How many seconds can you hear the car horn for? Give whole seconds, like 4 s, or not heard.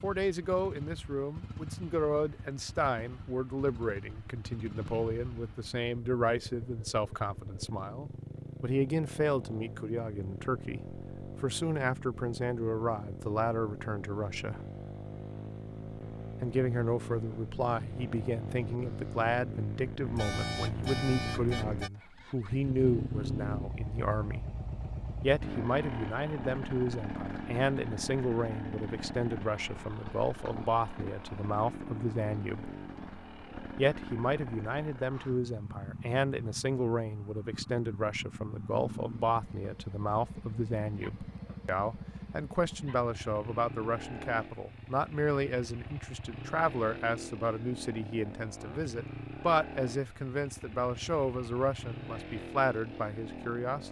2 s.